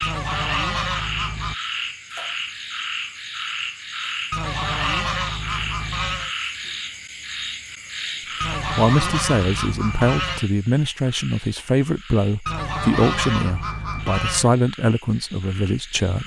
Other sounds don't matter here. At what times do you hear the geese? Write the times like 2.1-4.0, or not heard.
0.0-1.6, 4.3-6.3, 8.4-10.4, 12.4-14.5.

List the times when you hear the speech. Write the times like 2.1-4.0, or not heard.
8.6-16.2.